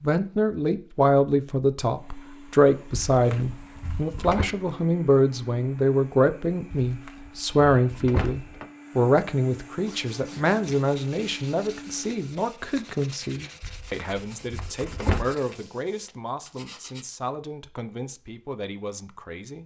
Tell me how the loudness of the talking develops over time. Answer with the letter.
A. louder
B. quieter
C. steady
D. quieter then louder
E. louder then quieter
B.